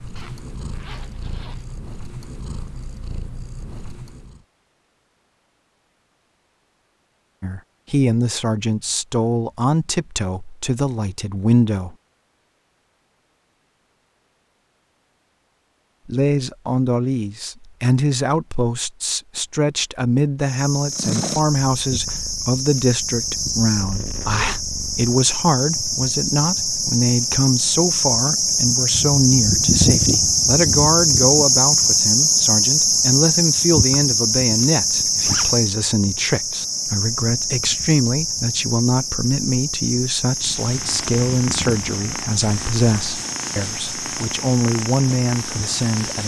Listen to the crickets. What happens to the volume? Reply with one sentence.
The loudness of the crickets goes up, then down.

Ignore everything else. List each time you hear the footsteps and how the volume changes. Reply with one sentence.
The footsteps can't be heard in this clip.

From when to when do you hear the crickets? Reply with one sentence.
The crickets can be heard from 20.4 to 46.2 s.